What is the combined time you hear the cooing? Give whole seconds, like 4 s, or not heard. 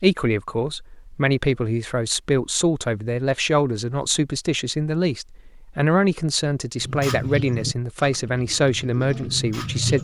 3 s.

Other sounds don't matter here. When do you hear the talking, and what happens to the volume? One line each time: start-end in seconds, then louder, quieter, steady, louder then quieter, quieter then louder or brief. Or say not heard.
0.0-9.9 steady.